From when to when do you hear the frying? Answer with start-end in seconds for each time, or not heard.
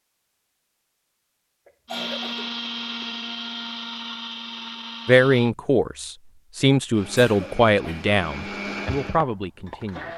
not heard.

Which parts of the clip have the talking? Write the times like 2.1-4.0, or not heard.
5.0-10.1.